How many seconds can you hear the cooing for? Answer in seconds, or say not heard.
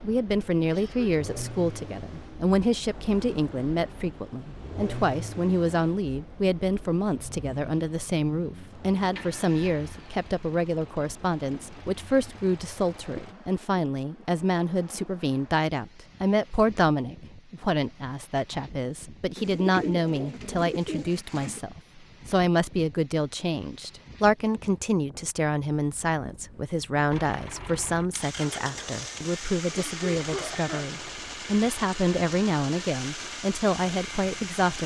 2 s.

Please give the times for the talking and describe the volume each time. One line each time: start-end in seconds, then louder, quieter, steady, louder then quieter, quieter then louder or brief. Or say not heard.
0.0-34.8 steady.